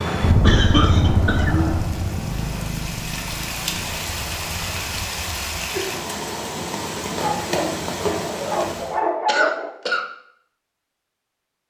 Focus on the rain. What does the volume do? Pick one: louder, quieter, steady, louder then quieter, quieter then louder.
louder.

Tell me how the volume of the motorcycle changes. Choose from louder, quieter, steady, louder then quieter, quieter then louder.
quieter.